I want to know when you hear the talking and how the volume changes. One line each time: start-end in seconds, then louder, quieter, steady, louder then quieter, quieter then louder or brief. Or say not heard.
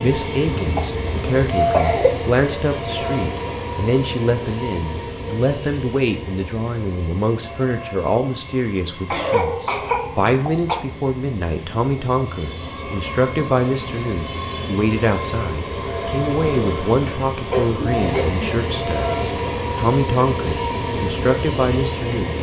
0.0-22.3 steady.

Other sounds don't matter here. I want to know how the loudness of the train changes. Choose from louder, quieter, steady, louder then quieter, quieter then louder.
quieter then louder.